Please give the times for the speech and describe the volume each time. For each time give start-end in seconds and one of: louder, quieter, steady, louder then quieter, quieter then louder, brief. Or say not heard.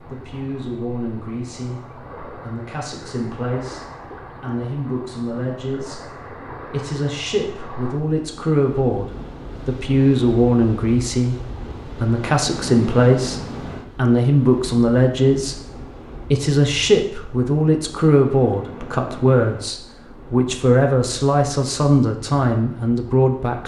0.1-23.6 louder.